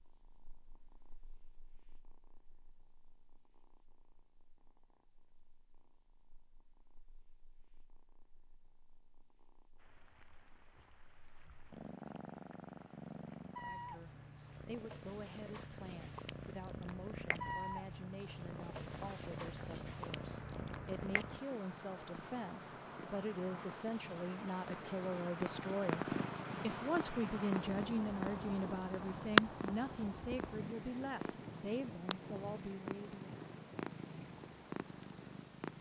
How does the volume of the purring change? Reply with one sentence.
The volume of the purring goes up.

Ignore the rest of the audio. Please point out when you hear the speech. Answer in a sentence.
You can hear the speech from 13.6 to 33.3 s.